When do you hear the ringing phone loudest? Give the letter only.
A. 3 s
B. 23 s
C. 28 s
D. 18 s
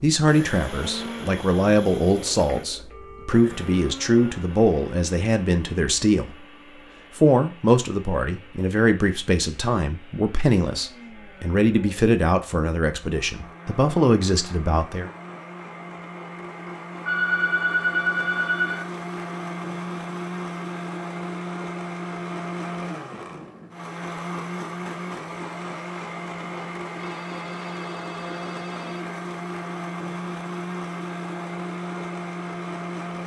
D.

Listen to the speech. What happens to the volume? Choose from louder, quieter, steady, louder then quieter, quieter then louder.
steady.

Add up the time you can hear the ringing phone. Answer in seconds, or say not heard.
6 s.